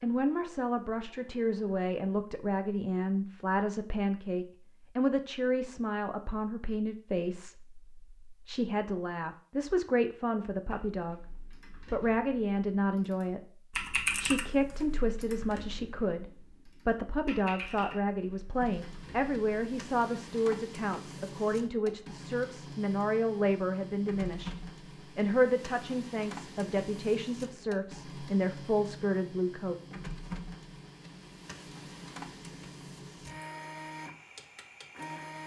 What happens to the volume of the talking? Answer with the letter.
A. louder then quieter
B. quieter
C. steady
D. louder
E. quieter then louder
C.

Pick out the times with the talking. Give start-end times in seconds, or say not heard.
0.0-29.8.